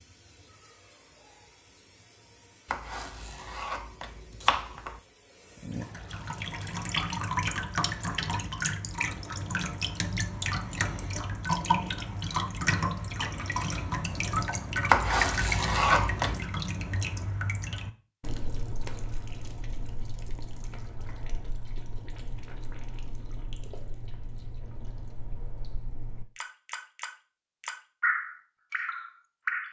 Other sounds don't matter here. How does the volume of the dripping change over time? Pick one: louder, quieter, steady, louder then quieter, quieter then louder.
quieter then louder.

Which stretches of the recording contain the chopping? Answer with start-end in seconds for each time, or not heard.
2.7-5.0, 14.8-16.4.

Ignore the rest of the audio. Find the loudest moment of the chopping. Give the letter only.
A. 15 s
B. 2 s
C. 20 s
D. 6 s
A.